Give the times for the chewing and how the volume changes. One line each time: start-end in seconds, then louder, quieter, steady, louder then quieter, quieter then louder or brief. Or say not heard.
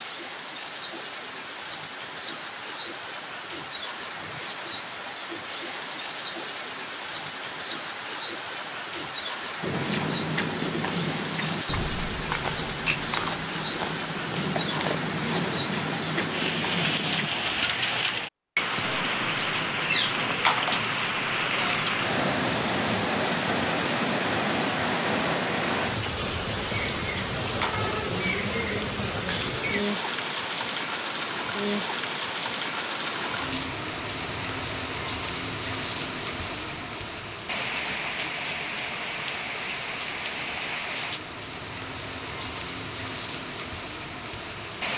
9.6-17.3 steady.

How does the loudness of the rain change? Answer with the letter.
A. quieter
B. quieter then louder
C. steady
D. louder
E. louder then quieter
E.